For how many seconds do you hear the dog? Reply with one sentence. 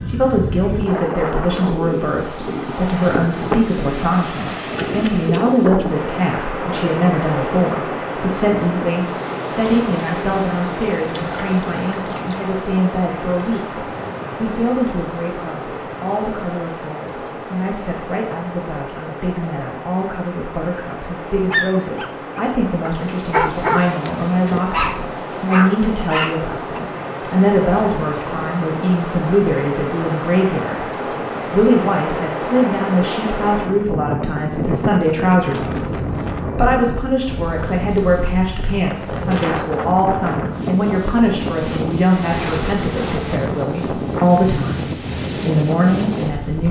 You can hear the dog for 5 seconds altogether.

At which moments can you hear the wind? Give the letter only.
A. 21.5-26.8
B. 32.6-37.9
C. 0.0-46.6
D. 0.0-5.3
C.